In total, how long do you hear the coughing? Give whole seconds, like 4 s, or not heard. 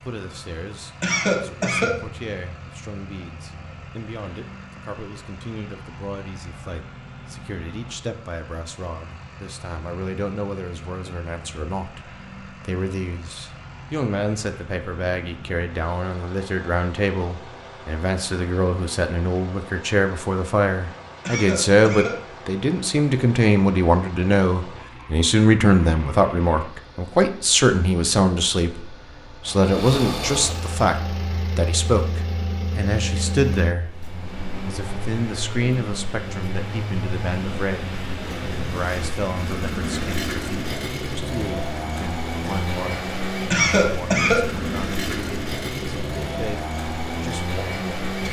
3 s.